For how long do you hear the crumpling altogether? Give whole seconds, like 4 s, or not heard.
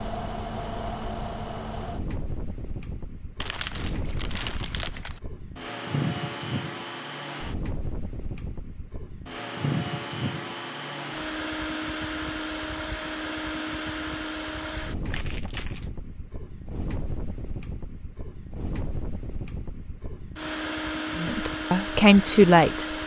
3 s.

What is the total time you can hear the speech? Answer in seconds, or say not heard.
2 s.